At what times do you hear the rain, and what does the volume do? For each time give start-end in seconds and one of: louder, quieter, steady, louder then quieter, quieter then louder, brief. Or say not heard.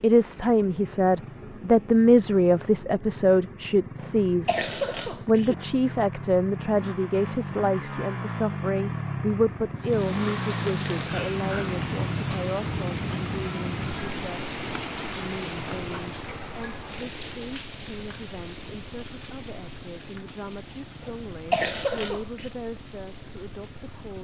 9.8-24.1 quieter.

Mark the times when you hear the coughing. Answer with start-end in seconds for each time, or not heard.
4.0-5.5, 21.0-22.5.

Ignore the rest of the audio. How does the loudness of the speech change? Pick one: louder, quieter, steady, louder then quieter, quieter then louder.
quieter.